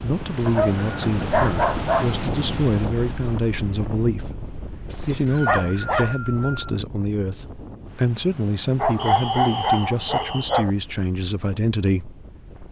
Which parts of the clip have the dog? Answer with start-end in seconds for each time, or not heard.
0.5-2.1, 5.0-6.2, 8.8-10.7.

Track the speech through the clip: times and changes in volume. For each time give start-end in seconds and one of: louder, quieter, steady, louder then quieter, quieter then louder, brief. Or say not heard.
0.0-12.2 steady.